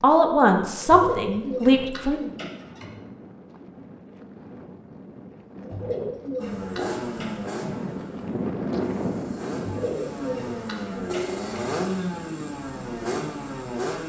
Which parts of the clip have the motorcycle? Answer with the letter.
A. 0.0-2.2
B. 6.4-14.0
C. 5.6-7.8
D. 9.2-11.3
B.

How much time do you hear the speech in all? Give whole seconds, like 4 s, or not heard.
2 s.